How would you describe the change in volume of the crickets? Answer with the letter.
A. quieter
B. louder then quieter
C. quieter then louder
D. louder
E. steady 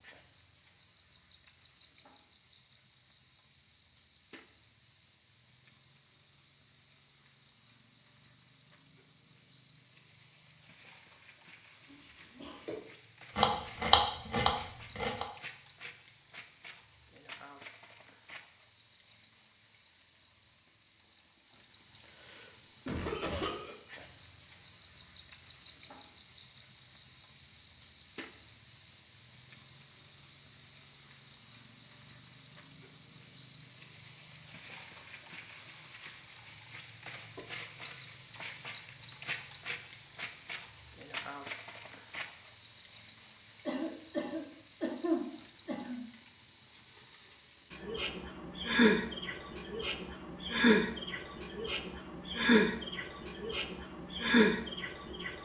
D.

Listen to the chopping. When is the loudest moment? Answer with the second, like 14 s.
14 s.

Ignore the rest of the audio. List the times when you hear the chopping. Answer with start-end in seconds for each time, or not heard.
13.3-15.2.